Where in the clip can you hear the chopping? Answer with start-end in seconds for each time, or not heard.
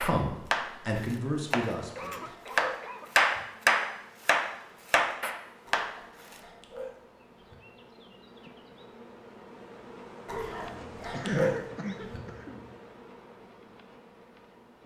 0.0-6.3.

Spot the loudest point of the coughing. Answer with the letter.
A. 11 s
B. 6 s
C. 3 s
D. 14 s
A.